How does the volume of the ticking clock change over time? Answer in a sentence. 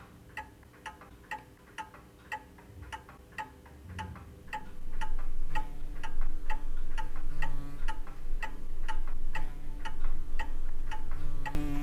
The loudness of the ticking clock stays about the same.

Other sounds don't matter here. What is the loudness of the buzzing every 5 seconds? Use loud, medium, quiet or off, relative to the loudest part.
off, medium, loud.